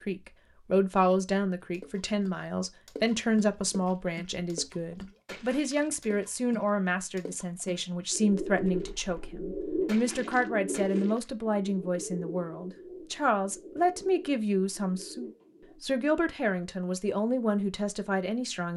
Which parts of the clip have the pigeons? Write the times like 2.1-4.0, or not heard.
8.1-15.8.